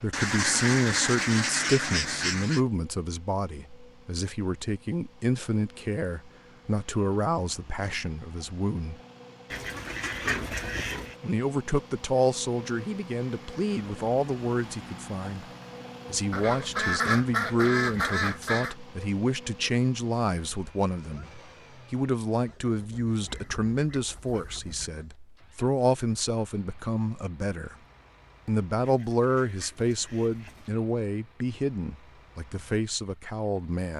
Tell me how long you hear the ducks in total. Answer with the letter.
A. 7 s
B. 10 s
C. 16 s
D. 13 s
B.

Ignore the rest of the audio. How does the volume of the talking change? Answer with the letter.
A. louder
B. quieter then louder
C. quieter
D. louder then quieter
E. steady
E.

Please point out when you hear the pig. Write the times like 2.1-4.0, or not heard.
10.1-11.1.